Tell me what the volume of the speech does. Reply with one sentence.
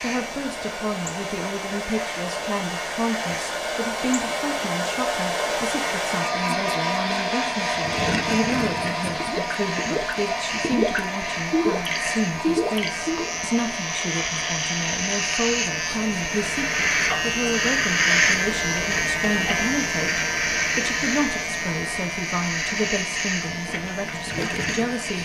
The volume of the speech stays about the same.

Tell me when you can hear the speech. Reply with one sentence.
You can hear the speech from 0.0 to 25.2 s.